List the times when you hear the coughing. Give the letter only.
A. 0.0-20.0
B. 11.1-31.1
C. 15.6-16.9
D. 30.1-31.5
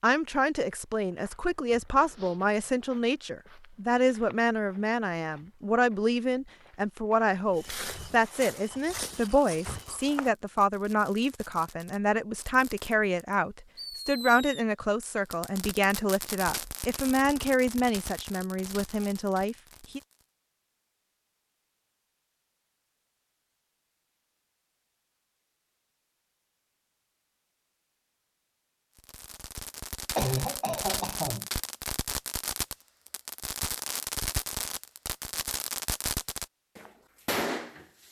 D.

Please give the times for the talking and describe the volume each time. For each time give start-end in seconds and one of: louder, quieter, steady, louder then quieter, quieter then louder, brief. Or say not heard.
0.0-20.0 steady.